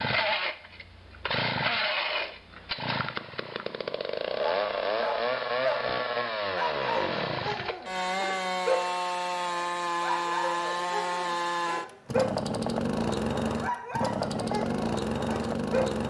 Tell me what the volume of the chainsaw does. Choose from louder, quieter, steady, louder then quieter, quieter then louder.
steady.